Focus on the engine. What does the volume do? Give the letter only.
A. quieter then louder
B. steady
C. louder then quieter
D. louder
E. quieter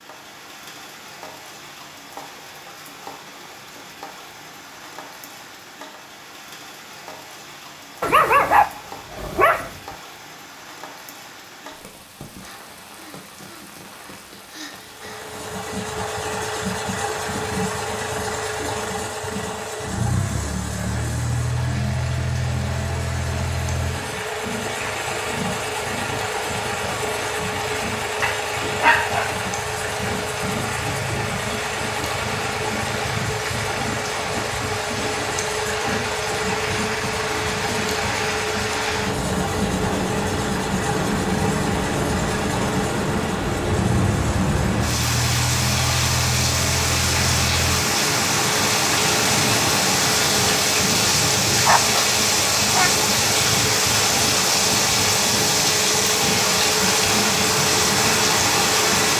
B.